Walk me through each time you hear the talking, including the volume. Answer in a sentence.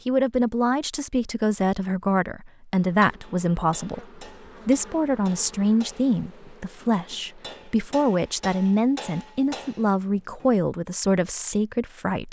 The talking can be heard from 0.1 to 12.2 s, at a steady volume.